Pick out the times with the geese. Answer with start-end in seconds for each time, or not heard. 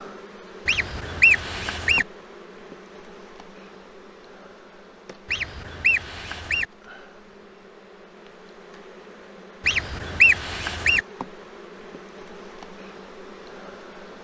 0.7-2.0, 5.2-6.7, 9.7-11.0.